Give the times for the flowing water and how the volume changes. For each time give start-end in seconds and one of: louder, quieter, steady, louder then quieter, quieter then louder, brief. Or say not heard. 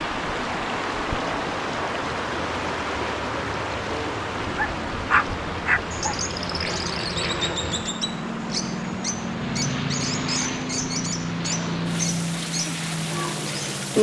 0.0-13.9 quieter.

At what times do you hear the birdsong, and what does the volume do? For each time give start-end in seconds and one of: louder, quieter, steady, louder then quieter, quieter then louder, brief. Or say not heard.
5.9-13.9 steady.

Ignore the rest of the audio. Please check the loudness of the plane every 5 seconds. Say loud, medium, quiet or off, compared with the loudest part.
medium, loud, loud.